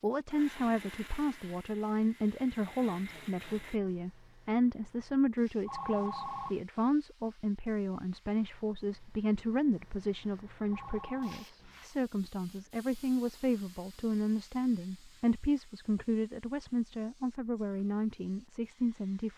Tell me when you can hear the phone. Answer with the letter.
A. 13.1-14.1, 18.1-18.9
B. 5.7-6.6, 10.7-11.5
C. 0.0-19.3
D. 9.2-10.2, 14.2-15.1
B.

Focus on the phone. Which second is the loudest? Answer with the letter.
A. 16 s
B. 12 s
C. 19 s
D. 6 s
D.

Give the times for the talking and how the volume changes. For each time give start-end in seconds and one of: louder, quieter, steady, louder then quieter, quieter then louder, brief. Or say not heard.
0.0-19.3 steady.